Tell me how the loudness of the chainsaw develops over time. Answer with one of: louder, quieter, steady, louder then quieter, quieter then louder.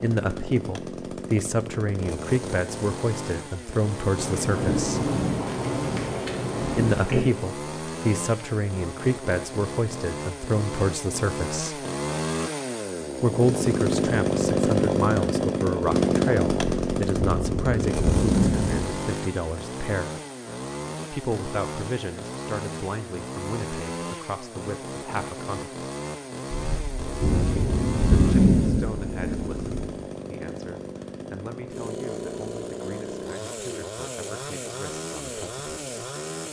louder then quieter.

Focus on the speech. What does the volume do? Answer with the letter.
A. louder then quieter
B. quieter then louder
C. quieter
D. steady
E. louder
C.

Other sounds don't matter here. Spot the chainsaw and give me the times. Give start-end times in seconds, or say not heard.
0.0-36.4.